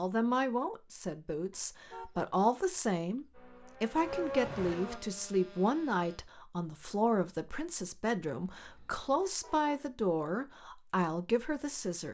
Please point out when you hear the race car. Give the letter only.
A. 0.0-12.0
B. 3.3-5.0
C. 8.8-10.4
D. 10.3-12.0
B.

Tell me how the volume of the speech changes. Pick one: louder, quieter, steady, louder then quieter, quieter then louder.
steady.